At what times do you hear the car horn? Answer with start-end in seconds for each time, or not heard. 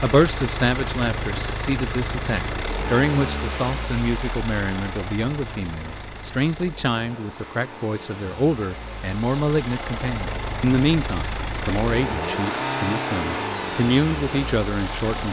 not heard.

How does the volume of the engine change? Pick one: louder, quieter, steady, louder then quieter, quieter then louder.
quieter then louder.